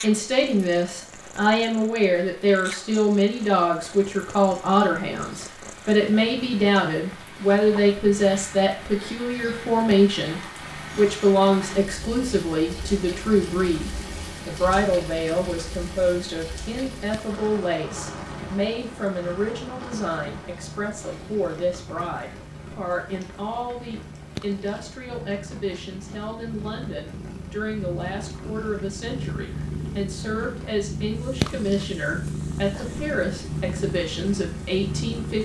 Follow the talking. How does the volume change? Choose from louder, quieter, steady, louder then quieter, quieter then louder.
quieter.